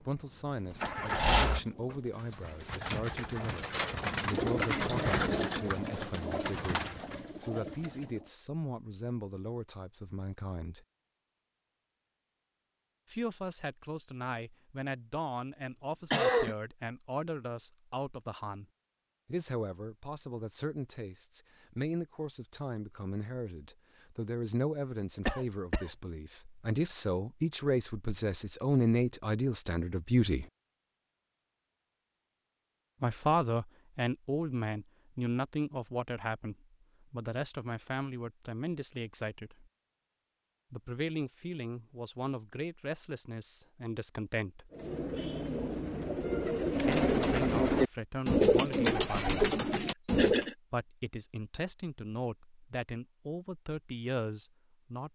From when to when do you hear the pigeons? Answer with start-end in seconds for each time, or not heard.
0.5-8.3, 44.7-50.5.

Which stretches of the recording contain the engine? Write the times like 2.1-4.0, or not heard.
0.0-1.6.